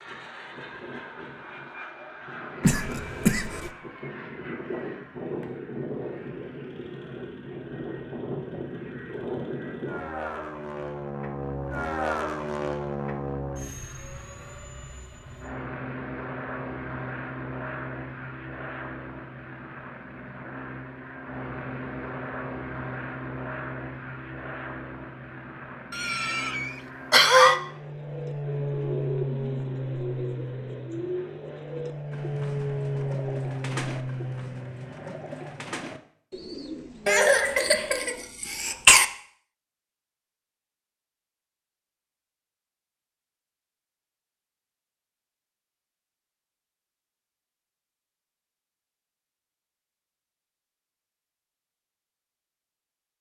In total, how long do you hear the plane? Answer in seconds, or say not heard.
36 s.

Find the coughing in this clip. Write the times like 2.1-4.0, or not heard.
2.6-3.7, 25.9-27.6, 37.0-39.0.